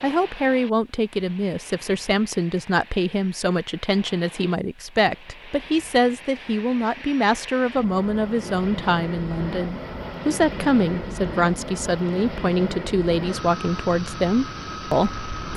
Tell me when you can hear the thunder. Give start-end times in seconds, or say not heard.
not heard.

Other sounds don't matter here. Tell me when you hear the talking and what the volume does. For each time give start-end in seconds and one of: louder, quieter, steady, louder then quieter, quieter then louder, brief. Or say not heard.
0.0-15.2 steady.